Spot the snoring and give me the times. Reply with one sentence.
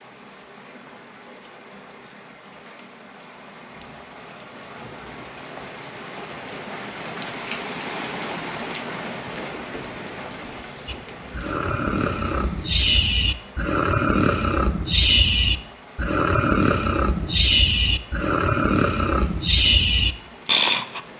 You can hear the snoring from 10.8 to 21.0 s.